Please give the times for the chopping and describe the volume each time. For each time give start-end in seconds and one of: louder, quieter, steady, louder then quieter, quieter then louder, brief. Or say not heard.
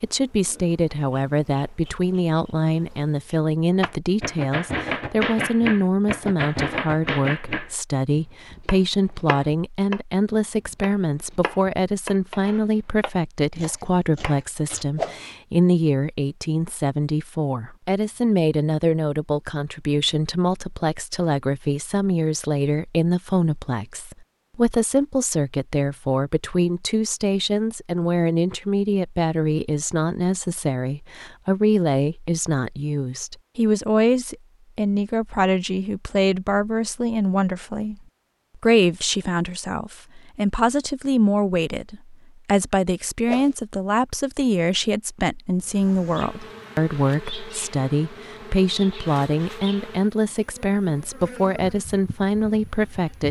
3.8-14.8 quieter.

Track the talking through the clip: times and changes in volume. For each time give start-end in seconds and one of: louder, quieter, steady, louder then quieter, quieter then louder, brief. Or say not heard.
0.0-53.2 steady.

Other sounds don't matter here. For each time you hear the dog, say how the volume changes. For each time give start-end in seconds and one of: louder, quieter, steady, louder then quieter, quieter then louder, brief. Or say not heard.
not heard.